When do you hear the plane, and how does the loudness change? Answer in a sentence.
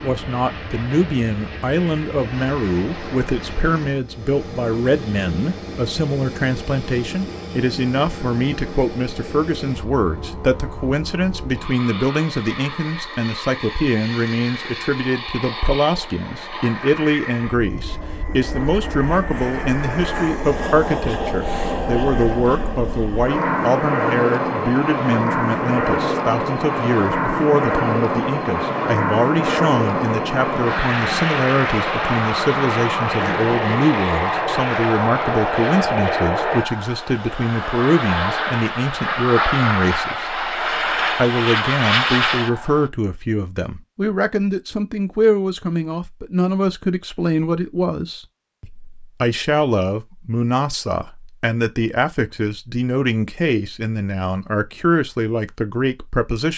The plane can be heard from 0.0 to 42.9 s, getting louder.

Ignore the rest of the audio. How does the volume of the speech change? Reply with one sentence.
The volume of the speech stays about the same.